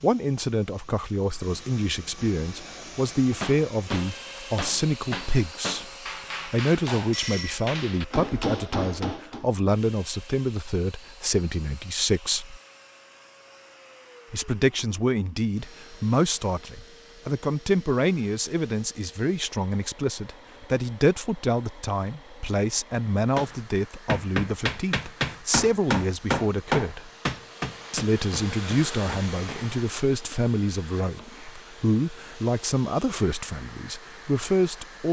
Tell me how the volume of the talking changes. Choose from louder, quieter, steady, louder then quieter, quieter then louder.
steady.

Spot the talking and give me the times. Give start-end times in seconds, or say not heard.
0.0-12.6, 14.3-27.1, 27.9-35.0.